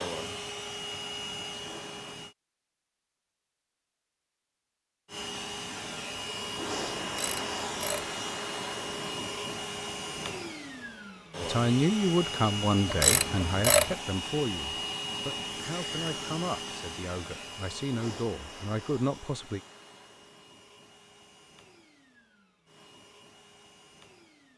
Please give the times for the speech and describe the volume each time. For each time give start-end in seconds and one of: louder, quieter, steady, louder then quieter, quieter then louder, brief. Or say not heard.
11.4-19.6 quieter then louder.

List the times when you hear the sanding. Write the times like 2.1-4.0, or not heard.
not heard.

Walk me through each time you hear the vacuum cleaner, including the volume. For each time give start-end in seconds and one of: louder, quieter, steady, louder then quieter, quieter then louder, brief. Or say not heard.
0.0-2.4 brief
5.0-24.5 quieter.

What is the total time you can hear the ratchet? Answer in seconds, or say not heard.
2 s.